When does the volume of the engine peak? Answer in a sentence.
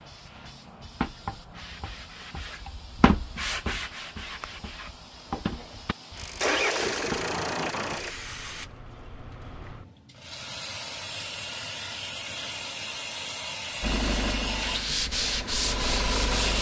The loudest moment of the engine is at 7 seconds.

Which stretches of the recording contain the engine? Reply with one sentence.
The engine can be heard from 6.2 to 8.2 s and from 13.8 to 16.5 s.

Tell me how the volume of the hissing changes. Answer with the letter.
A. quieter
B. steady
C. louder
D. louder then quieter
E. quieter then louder
C.